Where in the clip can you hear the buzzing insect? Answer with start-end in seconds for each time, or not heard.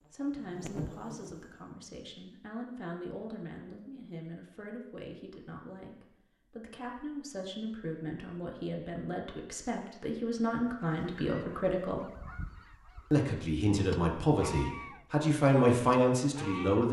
0.0-1.5.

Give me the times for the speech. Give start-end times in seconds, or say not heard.
0.1-12.1, 13.1-16.8.